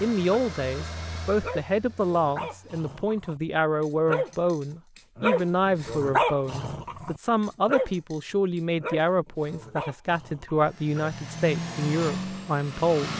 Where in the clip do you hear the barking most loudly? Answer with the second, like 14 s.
6 s.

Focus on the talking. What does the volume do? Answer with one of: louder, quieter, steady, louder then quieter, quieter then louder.
steady.